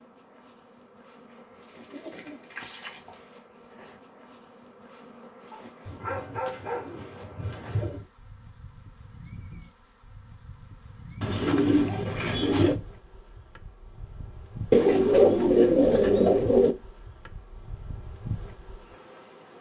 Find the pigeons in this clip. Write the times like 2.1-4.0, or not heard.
1.8-3.1, 5.8-8.1, 11.2-12.8, 14.7-16.8.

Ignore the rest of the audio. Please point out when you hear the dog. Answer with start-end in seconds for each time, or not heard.
5.5-6.9.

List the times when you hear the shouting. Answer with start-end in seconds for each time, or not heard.
not heard.